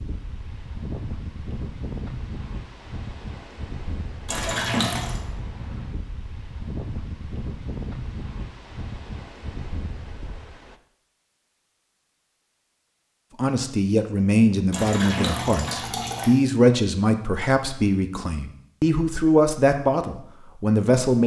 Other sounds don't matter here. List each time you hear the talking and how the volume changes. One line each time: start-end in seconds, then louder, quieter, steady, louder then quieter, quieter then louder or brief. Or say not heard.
13.3-21.2 steady.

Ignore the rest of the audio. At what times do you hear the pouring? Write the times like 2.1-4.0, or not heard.
4.2-5.2, 14.7-16.4.